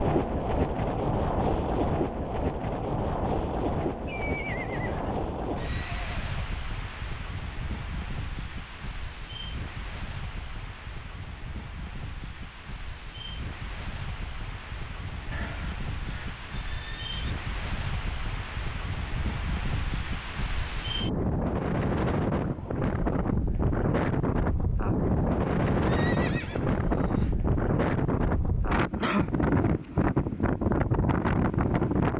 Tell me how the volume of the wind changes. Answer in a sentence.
The loudness of the wind goes down, then up.